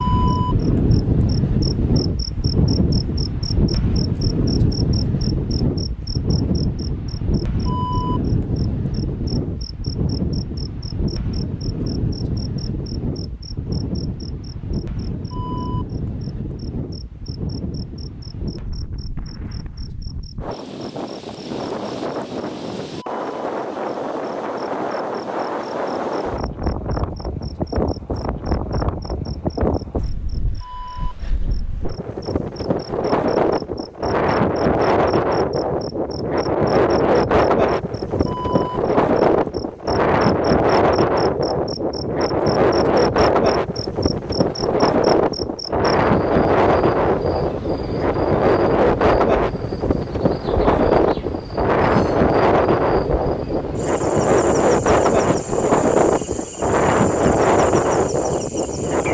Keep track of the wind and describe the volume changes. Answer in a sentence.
The volume of the wind goes down, then up.